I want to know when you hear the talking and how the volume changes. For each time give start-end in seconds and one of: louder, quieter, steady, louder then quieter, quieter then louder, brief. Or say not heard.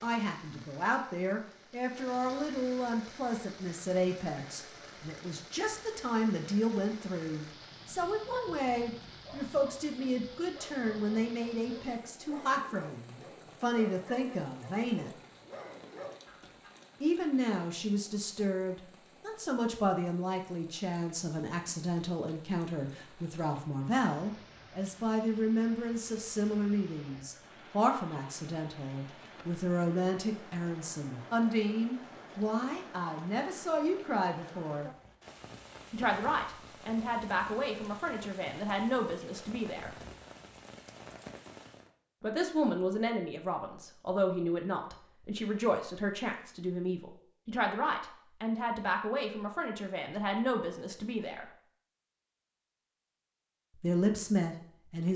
0.0-15.1 steady
17.0-34.9 steady
35.9-39.9 steady
42.2-51.5 steady
53.8-55.1 brief.